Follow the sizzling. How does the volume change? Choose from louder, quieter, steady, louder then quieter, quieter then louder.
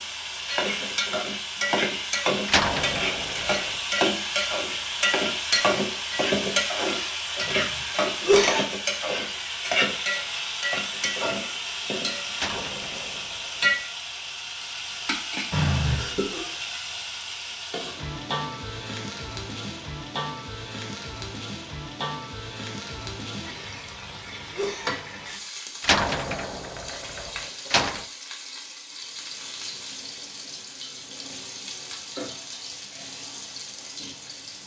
quieter.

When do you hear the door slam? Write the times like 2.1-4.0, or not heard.
2.5-3.8, 12.3-13.8, 25.8-28.1.